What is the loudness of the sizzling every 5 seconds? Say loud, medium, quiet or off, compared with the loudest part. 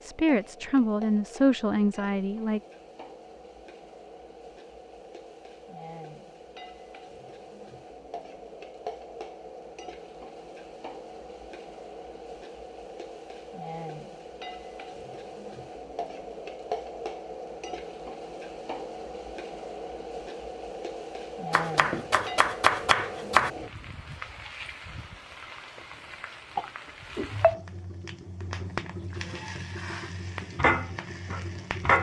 quiet, quiet, quiet, medium, medium, medium, loud.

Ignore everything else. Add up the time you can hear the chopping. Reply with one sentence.
You can hear the chopping for 2 seconds altogether.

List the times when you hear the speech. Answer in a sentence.
The speech can be heard from 0.0 to 2.6 s.